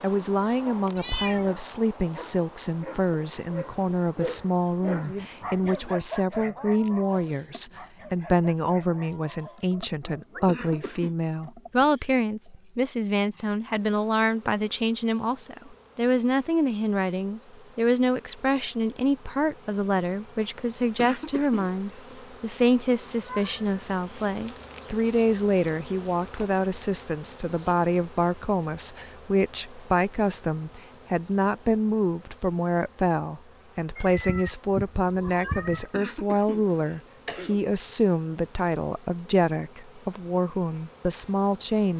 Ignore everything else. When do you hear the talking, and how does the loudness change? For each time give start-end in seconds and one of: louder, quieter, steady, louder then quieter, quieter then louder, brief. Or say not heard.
0.0-41.9 steady.